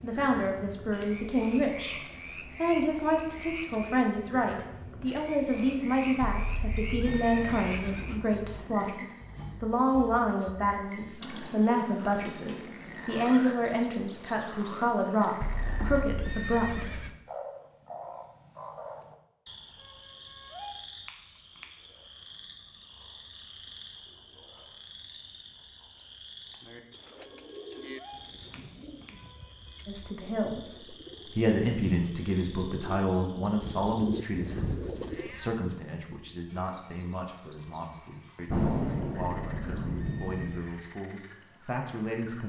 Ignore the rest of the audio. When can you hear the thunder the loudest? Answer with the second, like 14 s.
39 s.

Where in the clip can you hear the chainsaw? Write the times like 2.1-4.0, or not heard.
not heard.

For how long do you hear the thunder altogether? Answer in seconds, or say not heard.
5 s.